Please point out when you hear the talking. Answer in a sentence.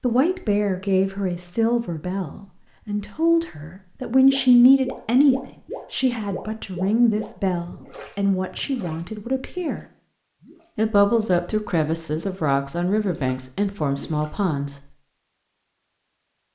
You can hear the talking from 0.0 to 9.8 s and from 10.8 to 14.8 s.